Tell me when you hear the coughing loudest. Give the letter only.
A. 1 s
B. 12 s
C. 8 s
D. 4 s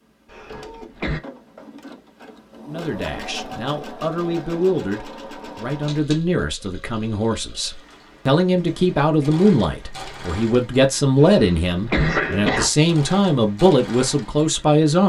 B.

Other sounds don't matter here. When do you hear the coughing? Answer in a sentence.
You can hear the coughing from 0.3 to 1.2 s and from 11.2 to 12.7 s.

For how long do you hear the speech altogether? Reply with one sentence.
The speech can be heard for 12 seconds in total.